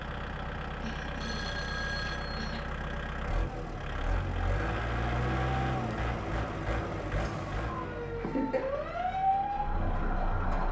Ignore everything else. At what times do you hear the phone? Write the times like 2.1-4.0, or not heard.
1.2-2.4.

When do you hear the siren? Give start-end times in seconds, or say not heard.
7.2-10.6.